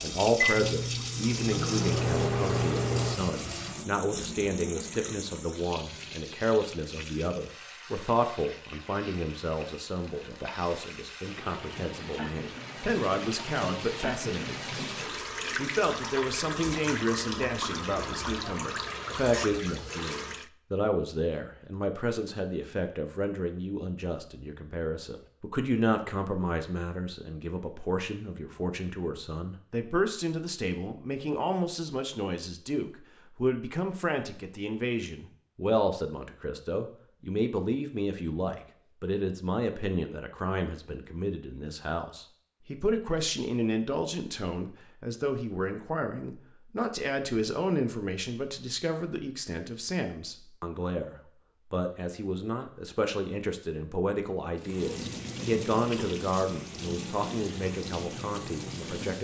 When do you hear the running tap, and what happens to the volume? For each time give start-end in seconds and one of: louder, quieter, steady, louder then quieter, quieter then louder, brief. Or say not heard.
0.0-20.5 quieter then louder
54.5-59.1 steady.